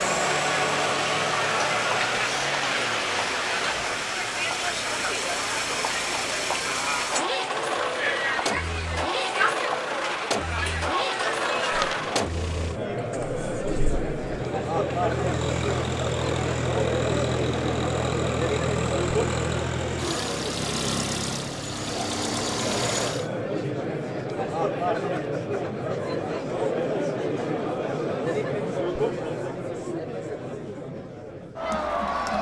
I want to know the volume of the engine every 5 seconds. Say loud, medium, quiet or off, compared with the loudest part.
loud, loud, loud, loud, loud, off, off.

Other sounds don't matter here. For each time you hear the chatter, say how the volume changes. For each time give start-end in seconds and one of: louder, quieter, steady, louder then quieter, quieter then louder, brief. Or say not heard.
0.0-32.3 steady.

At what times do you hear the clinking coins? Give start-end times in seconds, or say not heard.
11.7-12.2.